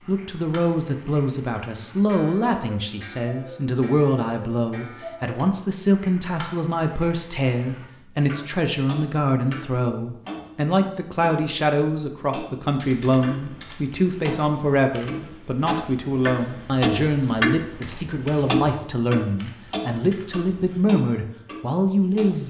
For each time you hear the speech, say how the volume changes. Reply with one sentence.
The speech can be heard from 0.1 to 22.4 s, at a steady volume.